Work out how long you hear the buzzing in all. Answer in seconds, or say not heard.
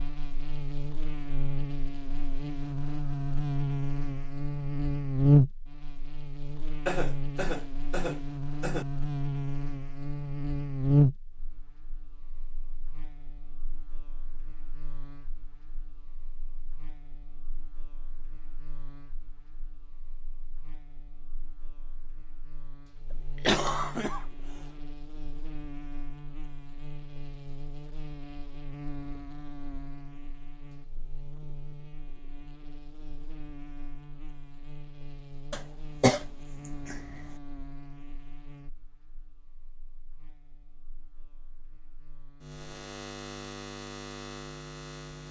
45 s.